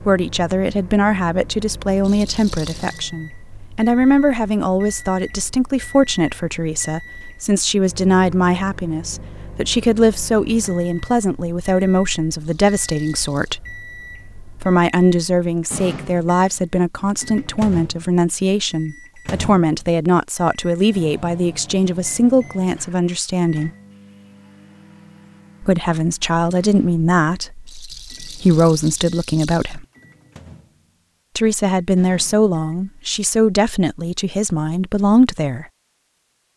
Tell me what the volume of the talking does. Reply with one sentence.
The loudness of the talking stays about the same.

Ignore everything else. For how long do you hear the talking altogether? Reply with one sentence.
You can hear the talking for 31 seconds altogether.